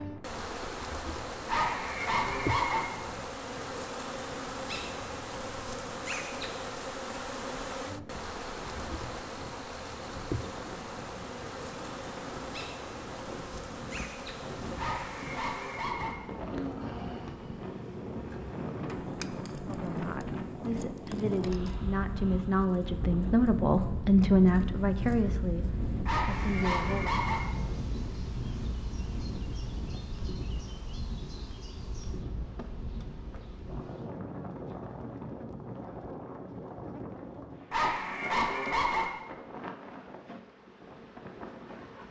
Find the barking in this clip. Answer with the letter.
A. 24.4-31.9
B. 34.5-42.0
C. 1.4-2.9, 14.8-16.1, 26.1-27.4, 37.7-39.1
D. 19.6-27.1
C.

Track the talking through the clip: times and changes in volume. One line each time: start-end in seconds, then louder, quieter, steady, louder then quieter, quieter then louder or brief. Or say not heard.
19.6-27.1 louder then quieter.